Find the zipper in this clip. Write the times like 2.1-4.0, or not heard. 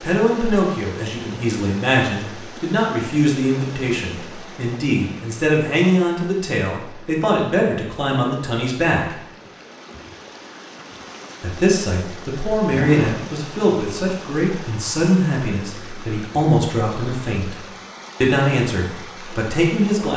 12.7-13.2.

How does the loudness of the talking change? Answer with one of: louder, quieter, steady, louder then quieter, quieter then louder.
steady.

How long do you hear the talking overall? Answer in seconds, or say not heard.
18 s.